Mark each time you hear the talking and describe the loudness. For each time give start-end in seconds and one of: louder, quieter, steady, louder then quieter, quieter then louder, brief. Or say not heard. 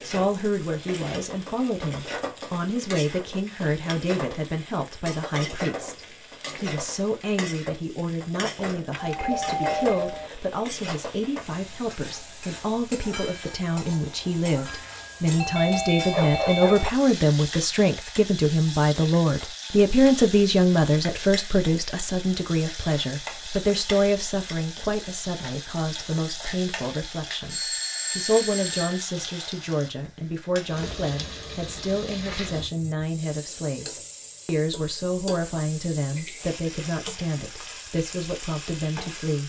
0.0-39.4 louder then quieter.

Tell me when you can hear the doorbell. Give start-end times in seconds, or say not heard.
8.9-10.3, 15.3-16.9, 27.4-29.0.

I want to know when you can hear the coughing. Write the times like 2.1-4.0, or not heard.
not heard.